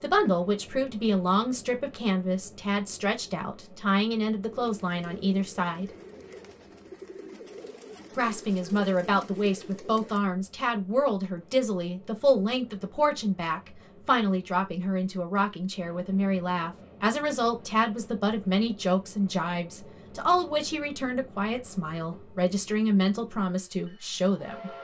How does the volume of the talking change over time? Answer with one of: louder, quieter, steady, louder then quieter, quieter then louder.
steady.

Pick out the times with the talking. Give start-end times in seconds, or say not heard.
0.0-5.8, 8.2-24.7.